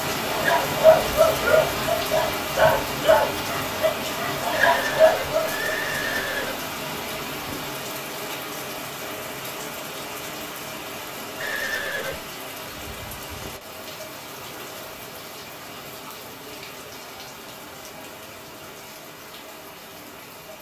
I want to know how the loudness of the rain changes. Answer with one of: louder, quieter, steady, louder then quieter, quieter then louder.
quieter.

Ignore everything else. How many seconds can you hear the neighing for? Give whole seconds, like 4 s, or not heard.
3 s.